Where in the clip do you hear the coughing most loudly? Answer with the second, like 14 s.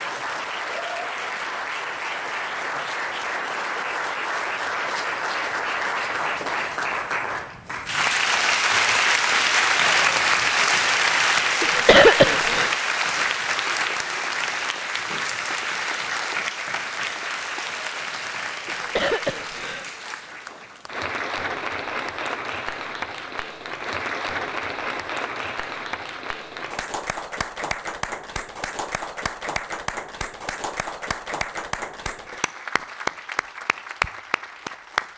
12 s.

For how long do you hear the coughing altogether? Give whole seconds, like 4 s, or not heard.
2 s.